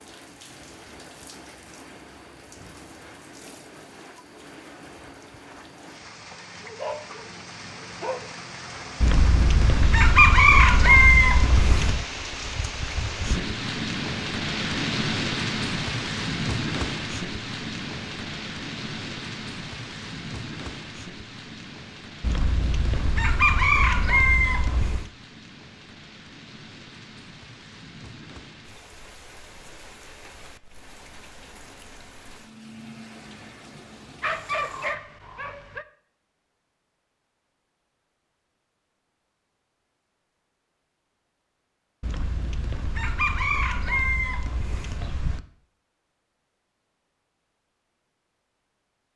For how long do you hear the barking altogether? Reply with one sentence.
You can hear the barking for 3 seconds altogether.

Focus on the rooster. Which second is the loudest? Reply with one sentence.
The volume of the rooster peaks at 11 seconds.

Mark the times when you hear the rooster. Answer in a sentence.
The rooster can be heard from 9.0 to 12.1 s, from 22.2 to 25.1 s and from 42.0 to 45.4 s.